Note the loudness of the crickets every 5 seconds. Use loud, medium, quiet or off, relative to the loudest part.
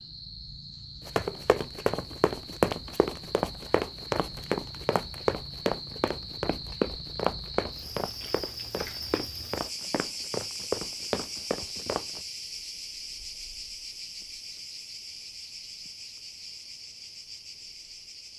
medium, loud, loud, medium.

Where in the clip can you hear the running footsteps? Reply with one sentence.
The running footsteps can be heard from 1.1 to 12.2 s.